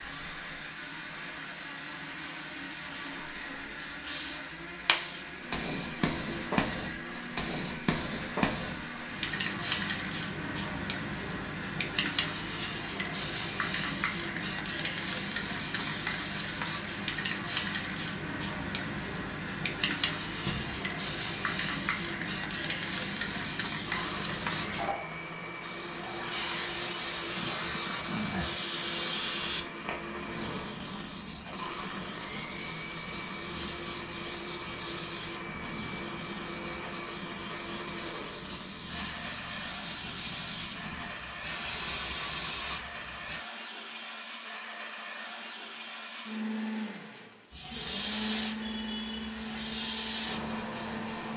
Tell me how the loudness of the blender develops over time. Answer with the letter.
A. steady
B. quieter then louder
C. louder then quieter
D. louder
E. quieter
A.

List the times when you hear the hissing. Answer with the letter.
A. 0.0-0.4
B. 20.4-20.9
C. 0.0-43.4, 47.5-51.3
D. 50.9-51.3
C.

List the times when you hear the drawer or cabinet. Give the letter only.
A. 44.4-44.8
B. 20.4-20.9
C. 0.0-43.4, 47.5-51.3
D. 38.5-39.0
B.